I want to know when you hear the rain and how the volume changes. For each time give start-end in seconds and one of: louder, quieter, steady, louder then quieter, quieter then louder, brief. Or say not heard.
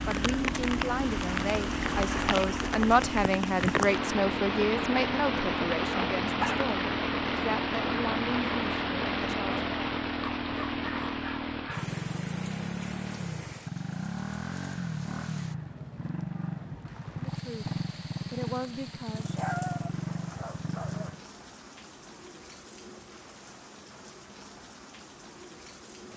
0.0-26.1 quieter.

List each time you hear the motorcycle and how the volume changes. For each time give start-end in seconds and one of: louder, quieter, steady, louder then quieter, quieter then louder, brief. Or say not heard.
0.0-21.2 steady.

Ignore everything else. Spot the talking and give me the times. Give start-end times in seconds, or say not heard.
0.1-9.6, 17.4-19.4.